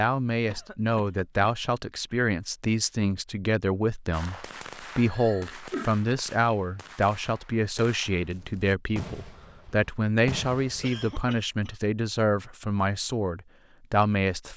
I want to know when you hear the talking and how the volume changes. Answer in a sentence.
The talking can be heard from 0.0 to 14.5 s, at a steady volume.